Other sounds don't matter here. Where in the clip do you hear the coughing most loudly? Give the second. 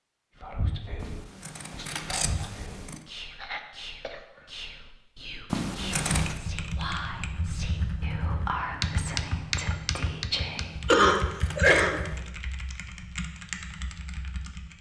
11 s.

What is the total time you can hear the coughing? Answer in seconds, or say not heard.
2 s.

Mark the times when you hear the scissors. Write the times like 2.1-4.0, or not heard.
1.0-3.0, 5.5-6.4, 10.6-12.2.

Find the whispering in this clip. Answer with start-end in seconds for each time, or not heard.
0.4-10.7.